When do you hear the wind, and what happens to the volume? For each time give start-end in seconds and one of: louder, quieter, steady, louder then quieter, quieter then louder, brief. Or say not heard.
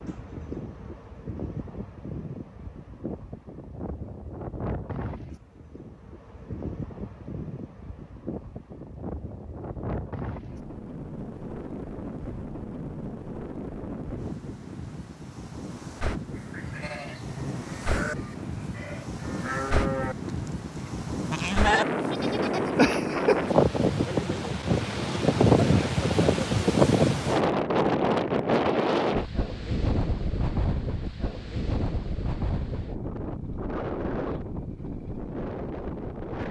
0.0-36.4 louder then quieter.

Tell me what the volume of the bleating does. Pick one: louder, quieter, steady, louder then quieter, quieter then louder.
louder.